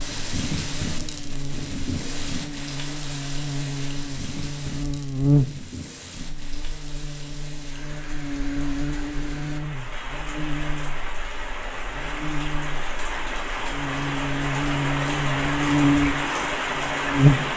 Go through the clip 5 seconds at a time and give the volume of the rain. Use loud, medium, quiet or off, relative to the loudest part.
medium, quiet, medium, loud.